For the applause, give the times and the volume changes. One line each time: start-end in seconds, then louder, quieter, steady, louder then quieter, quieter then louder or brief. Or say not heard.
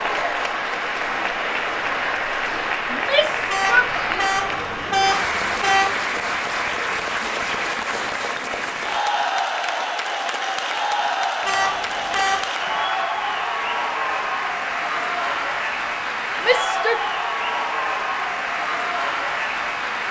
0.0-20.0 steady.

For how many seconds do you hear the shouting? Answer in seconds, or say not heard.
2 s.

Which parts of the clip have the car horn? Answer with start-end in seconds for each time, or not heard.
3.5-6.0, 11.4-12.4.